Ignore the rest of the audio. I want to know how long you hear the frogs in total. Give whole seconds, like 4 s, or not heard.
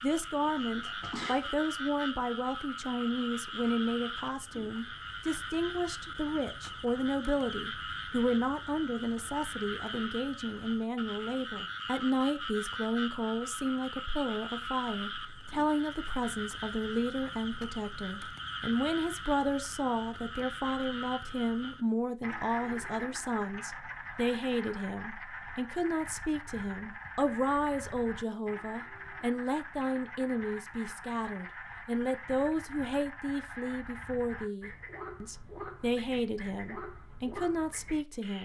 38 s.